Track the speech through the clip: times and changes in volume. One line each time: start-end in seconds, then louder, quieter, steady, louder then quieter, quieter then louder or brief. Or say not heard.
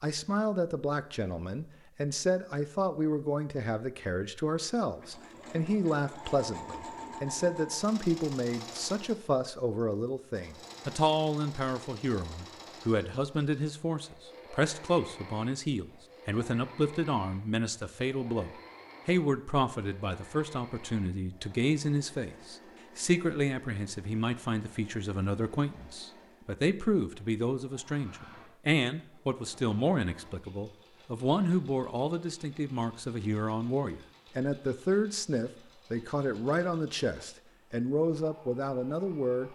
0.0-39.5 steady.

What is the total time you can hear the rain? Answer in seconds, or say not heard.
not heard.